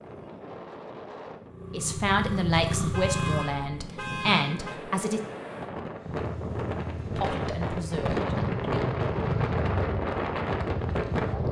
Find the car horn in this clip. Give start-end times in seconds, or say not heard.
2.9-4.8.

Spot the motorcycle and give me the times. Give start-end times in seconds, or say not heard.
1.4-3.5, 6.0-11.4.